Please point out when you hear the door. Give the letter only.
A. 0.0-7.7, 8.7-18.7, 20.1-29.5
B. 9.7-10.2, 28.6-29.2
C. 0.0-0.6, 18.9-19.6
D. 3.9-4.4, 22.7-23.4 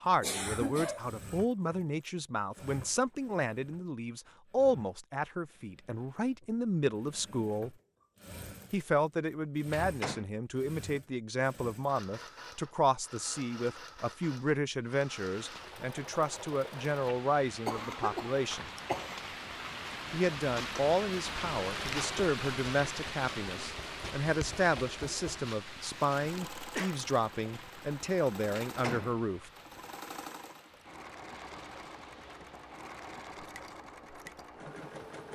B.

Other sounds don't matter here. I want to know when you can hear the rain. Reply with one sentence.
You can hear the rain from 14.8 to 35.3 s.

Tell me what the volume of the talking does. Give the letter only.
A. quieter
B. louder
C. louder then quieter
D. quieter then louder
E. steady
E.